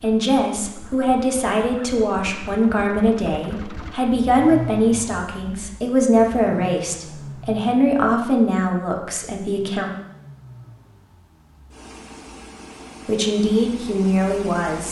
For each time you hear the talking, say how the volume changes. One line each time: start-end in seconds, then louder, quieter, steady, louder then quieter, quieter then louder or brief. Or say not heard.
0.0-9.9 steady
13.1-14.8 brief.